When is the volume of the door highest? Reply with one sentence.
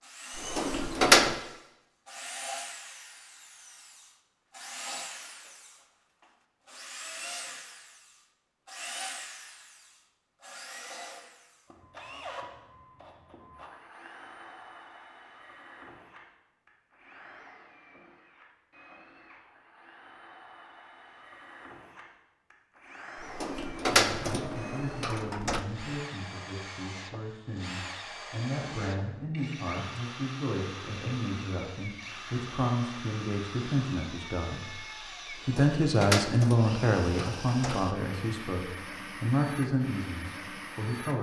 The volume of the door peaks at 1 second.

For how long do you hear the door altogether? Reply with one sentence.
You can hear the door for 6 seconds altogether.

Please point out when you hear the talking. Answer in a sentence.
The talking can be heard from 23.9 to 34.9 s and from 35.5 to 41.1 s.